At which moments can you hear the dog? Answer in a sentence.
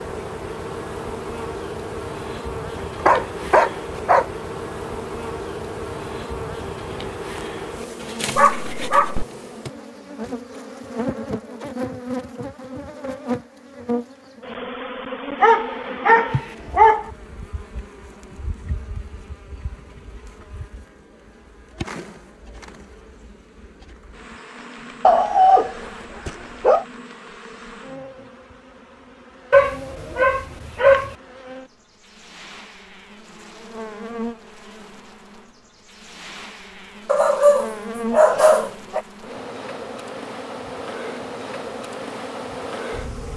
You can hear the dog from 3.0 to 4.2 s, from 8.3 to 9.2 s, from 15.4 to 17.1 s, from 25.0 to 26.9 s, from 29.5 to 31.1 s and from 37.0 to 39.0 s.